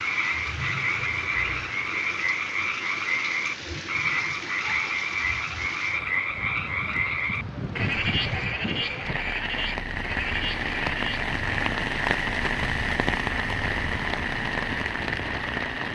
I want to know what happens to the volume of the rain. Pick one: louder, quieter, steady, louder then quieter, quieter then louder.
louder.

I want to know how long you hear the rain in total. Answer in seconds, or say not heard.
16 s.